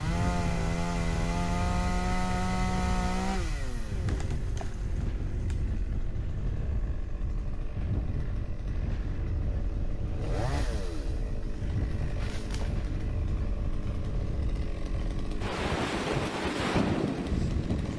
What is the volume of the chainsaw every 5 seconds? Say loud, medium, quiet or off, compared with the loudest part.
loud, quiet, medium, medium.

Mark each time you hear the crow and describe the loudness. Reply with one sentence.
You can't hear the crow here.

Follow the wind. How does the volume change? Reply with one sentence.
The loudness of the wind goes up.